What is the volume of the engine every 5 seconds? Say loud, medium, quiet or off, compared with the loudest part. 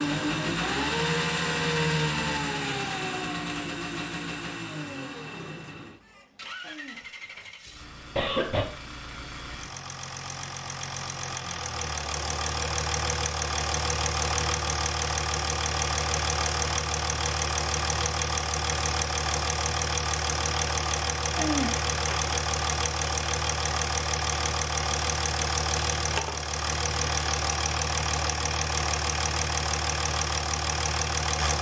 loud, quiet, loud, loud, loud, loud, loud.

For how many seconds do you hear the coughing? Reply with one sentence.
The coughing can be heard for 2 seconds in total.